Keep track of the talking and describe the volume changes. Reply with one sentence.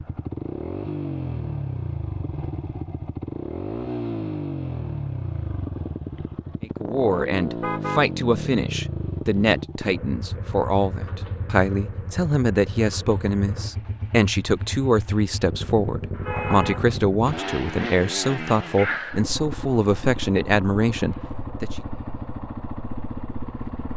The loudness of the talking stays about the same.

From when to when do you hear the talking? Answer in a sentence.
The talking can be heard from 6.6 to 21.8 s.